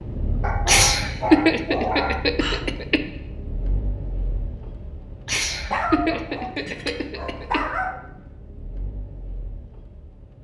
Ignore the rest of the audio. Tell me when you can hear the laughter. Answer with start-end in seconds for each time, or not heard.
0.7-3.0, 5.2-7.7.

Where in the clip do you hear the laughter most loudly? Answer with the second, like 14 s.
1 s.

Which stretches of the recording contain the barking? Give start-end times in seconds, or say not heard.
0.4-2.7, 5.7-8.0.